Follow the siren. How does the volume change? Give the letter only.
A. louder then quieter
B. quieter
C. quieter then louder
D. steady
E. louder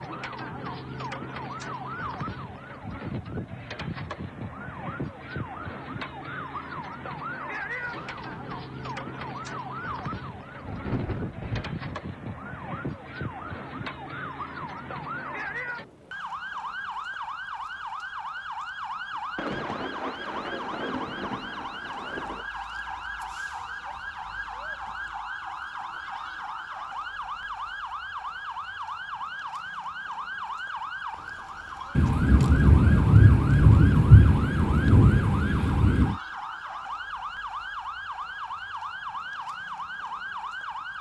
D.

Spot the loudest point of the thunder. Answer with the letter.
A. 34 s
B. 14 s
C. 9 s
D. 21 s
A.